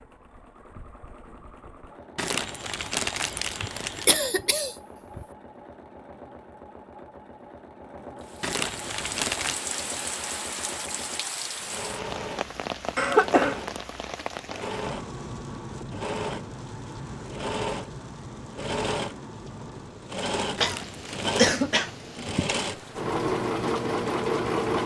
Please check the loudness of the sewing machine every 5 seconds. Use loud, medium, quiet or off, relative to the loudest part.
quiet, quiet, medium, medium, loud.